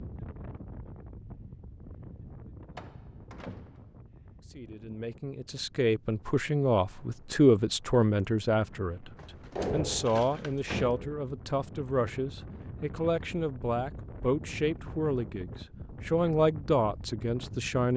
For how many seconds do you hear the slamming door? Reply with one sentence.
You can hear the slamming door for 3 seconds altogether.